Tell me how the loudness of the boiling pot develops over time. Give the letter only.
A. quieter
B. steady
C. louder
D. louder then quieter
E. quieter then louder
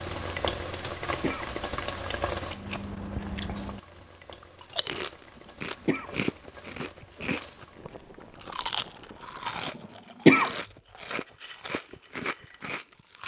A.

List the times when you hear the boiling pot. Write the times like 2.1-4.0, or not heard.
0.0-9.5.